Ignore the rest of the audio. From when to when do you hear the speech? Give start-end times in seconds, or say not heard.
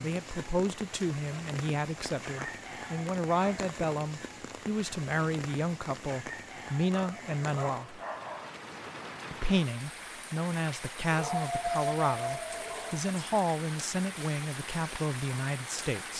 0.0-8.0, 9.3-16.1.